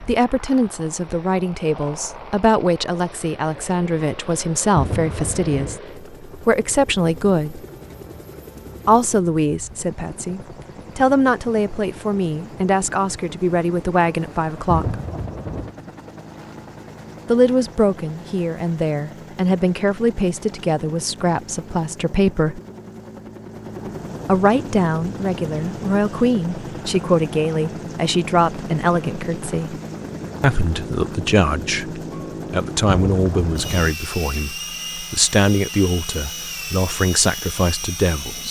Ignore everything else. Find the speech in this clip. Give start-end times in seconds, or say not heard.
0.1-7.6, 8.8-14.9, 17.2-22.6, 24.2-29.8, 30.4-38.4.